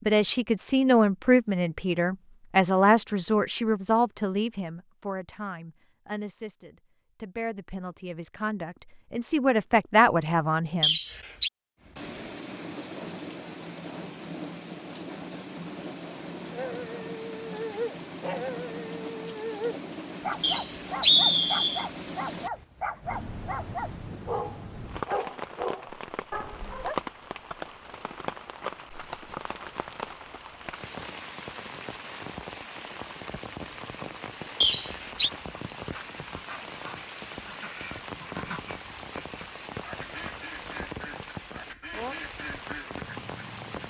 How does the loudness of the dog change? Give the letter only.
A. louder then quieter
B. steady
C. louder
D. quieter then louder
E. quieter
B.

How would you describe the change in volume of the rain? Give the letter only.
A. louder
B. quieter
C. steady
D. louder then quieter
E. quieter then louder
C.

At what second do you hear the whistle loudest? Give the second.
21 s.